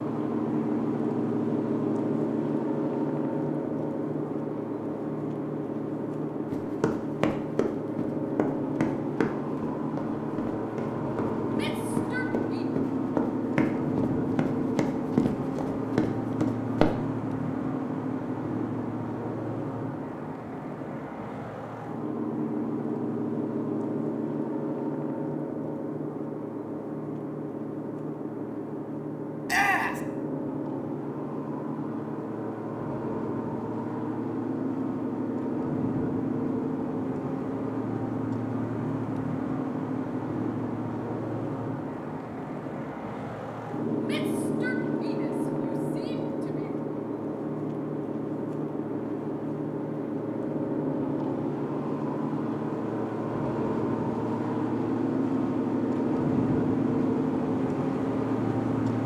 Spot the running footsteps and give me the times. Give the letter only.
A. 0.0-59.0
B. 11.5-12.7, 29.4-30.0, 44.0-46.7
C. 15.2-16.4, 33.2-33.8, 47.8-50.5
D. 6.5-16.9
D.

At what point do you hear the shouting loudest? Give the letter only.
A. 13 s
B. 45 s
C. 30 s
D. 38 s
C.